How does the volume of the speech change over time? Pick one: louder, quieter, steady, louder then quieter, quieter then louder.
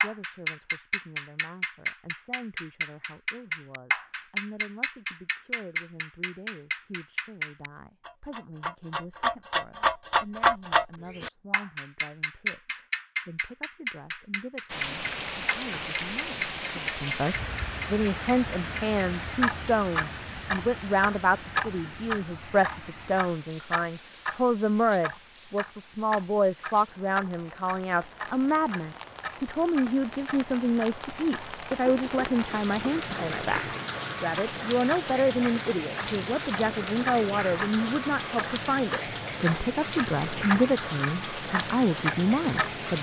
louder.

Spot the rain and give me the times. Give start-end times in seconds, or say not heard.
14.7-42.9.